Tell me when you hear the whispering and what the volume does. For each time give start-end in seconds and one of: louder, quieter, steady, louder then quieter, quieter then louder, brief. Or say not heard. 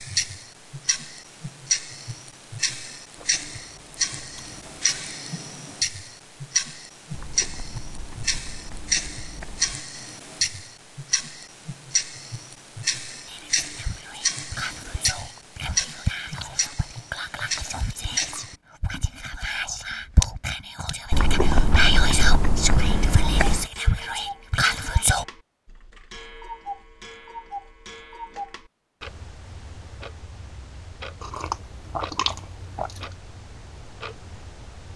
13.2-25.2 louder.